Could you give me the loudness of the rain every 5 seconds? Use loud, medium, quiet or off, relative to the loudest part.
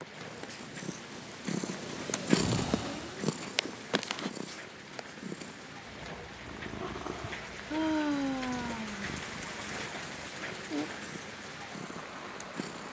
medium, loud, loud.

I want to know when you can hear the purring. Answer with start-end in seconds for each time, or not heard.
0.0-12.8.